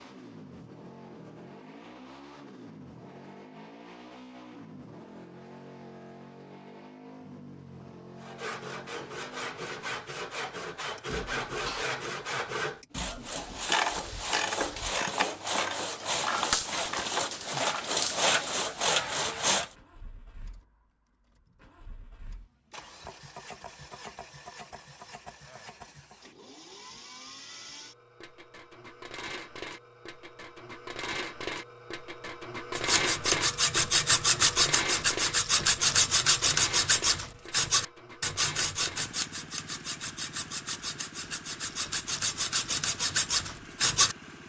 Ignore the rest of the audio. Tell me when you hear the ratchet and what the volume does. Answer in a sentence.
You can hear the ratchet from 13.3 to 19.7 s, getting quieter.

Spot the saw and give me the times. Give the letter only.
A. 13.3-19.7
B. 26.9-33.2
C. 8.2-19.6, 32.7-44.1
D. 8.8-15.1
C.